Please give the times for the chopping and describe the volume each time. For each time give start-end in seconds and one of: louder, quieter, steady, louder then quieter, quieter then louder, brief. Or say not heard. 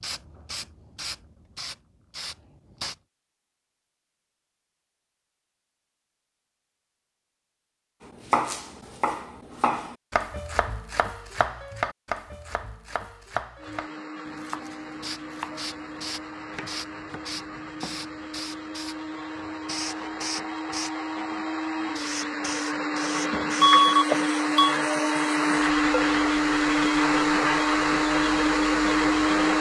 8.3-18.1 quieter.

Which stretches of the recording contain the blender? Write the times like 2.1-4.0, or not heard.
13.6-29.5.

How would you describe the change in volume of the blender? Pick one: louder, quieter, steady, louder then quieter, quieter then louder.
louder.